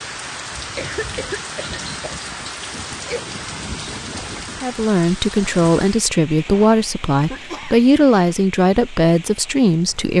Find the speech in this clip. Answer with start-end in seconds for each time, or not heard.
4.6-10.1.